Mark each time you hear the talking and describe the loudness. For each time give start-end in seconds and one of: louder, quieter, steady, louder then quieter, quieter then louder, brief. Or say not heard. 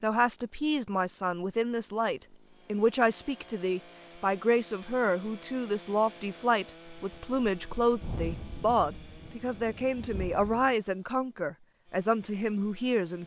0.0-13.2 steady.